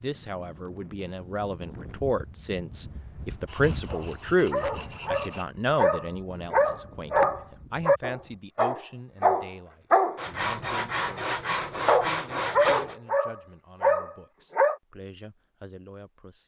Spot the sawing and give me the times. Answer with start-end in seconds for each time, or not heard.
3.5-5.5, 10.2-12.9.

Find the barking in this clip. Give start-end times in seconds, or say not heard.
3.9-14.8.